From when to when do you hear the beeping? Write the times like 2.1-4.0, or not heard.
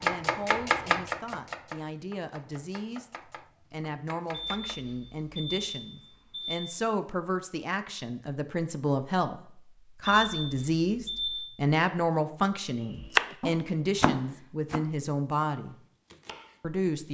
4.3-6.7, 10.1-11.5.